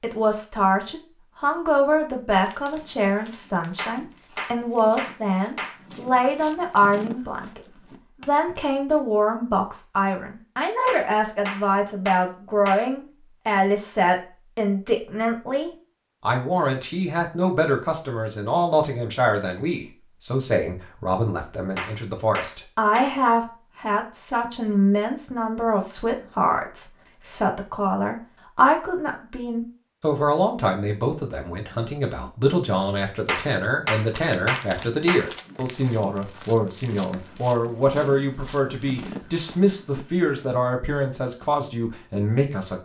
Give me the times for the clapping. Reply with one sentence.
You can hear the clapping from 3.8 to 5.8 s, from 10.8 to 12.8 s, from 21.8 to 23.1 s and from 33.2 to 35.2 s.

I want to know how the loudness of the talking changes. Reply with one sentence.
The volume of the talking stays about the same.